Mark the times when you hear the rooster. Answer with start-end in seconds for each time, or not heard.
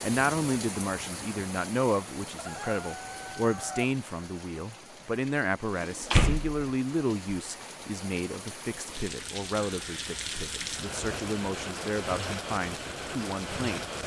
2.4-4.0.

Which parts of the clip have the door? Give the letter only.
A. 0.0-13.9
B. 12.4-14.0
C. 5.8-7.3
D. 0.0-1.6
C.